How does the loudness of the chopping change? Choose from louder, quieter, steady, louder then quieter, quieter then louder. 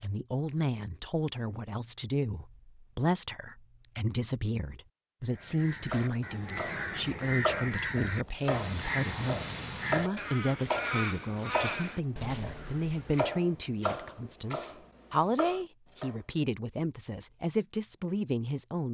steady.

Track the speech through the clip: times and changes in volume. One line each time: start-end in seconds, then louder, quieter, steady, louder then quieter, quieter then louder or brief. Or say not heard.
0.0-18.8 steady.